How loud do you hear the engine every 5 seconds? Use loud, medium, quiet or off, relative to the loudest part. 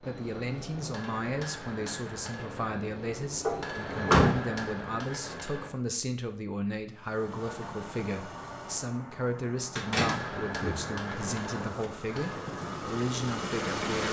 off, medium, loud.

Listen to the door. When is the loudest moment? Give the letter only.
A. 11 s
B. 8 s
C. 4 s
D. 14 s
C.